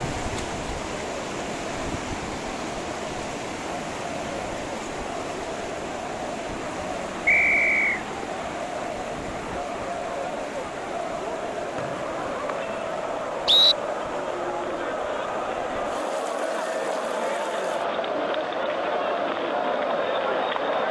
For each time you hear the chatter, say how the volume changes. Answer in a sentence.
You can hear the chatter from 0.0 to 20.8 s, getting louder.